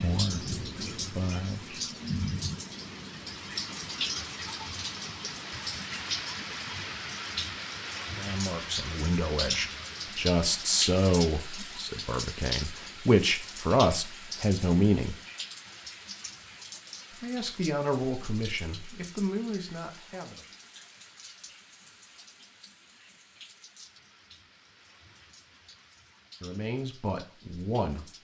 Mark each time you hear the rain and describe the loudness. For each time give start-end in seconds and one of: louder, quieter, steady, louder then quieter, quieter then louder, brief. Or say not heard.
0.0-28.1 quieter.